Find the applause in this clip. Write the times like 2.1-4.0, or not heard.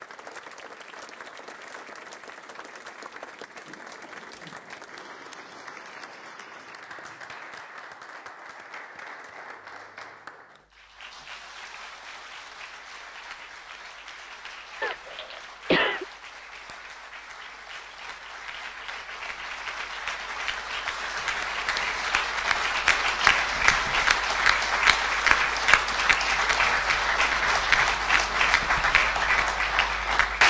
0.0-30.4.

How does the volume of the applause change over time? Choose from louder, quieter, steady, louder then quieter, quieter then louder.
louder.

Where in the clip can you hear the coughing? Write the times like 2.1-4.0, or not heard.
14.8-16.1.